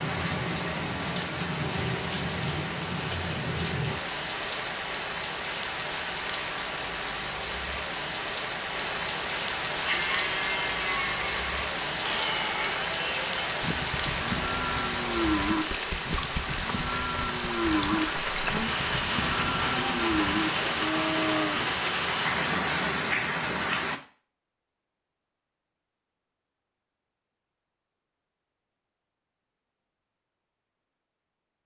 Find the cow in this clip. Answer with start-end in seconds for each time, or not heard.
9.8-21.7.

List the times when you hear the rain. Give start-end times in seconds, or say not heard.
0.0-24.0.